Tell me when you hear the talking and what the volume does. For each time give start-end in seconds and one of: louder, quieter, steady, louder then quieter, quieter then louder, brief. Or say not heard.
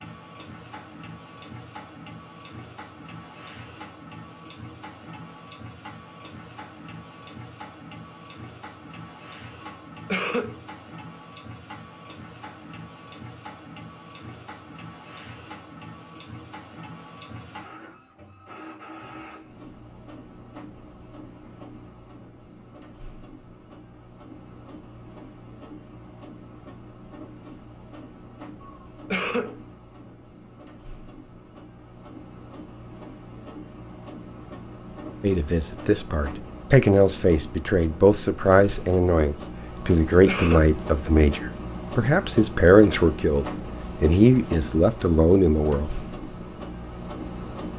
35.2-45.9 steady.